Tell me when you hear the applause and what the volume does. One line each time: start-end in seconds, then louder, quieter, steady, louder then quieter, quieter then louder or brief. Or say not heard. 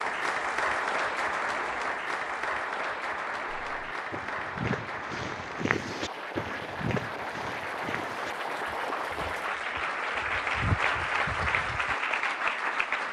0.0-13.0 quieter then louder.